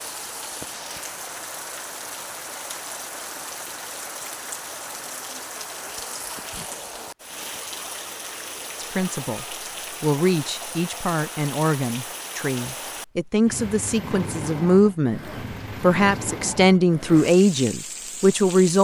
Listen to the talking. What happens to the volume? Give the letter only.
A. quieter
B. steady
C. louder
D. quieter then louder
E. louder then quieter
C.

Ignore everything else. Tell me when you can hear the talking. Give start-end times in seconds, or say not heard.
8.8-15.2, 15.8-18.8.